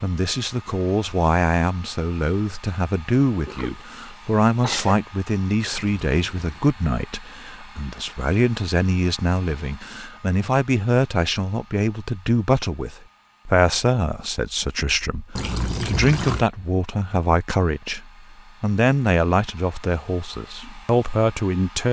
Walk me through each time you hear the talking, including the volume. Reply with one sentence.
You can hear the talking from 0.0 to 21.8 s, at a steady volume.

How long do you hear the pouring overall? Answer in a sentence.
You can hear the pouring for 2 seconds altogether.